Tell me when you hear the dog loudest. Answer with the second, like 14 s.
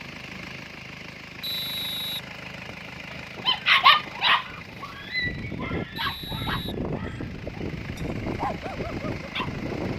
4 s.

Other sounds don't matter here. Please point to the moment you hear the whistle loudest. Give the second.
2 s.